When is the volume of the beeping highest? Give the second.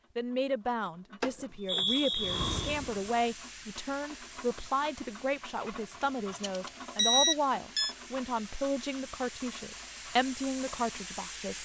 7 s.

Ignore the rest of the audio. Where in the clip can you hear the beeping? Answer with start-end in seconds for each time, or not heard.
1.2-2.5, 6.0-8.0.